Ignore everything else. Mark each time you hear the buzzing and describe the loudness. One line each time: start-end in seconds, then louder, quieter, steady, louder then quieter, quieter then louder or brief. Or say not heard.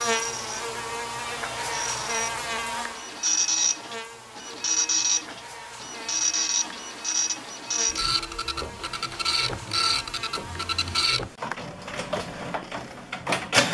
0.0-11.2 quieter.